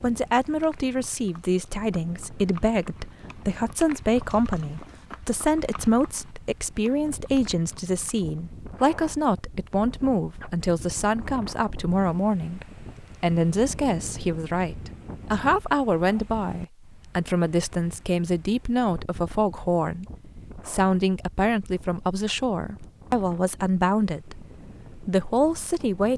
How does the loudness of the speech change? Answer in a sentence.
The volume of the speech stays about the same.